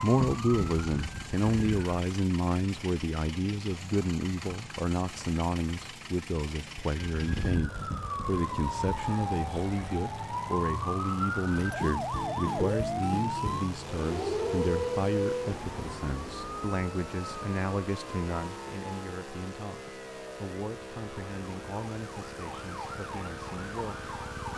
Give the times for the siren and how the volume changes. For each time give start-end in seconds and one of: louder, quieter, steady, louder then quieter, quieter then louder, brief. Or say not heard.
0.0-1.9 brief
7.0-24.5 quieter.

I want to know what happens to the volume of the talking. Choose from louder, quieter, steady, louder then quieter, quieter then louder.
quieter.